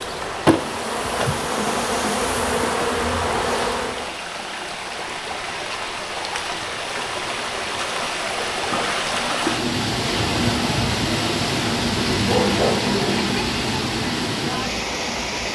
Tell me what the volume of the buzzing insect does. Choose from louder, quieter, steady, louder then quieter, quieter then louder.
steady.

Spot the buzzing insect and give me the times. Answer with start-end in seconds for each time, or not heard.
0.0-4.2.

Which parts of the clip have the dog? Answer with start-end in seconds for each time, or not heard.
12.1-13.4.